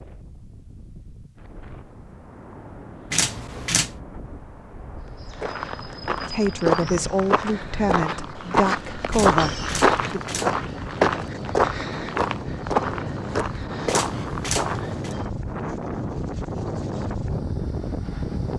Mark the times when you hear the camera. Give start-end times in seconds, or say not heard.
3.1-4.0, 9.1-10.6, 13.8-15.2.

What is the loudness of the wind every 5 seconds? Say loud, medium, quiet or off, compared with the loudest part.
quiet, medium, loud, loud.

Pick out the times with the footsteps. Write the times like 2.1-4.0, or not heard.
5.2-15.3.